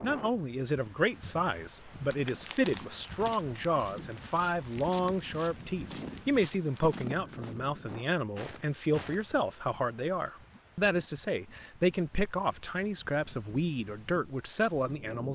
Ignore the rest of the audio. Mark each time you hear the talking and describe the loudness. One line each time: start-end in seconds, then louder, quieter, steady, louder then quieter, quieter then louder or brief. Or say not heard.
0.0-15.3 steady.